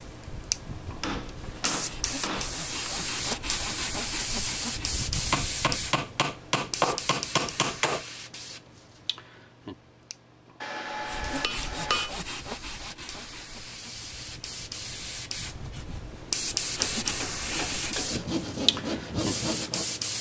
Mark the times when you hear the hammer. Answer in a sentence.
The hammer can be heard from 1.0 to 2.9 s, from 5.3 to 8.1 s, from 10.6 to 12.1 s and from 16.6 to 18.3 s.